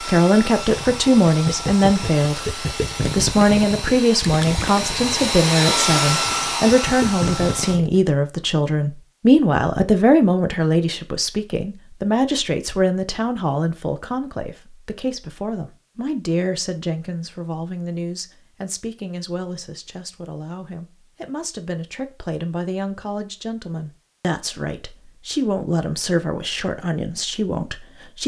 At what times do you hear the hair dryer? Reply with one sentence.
The hair dryer can be heard from 0.0 to 7.8 s.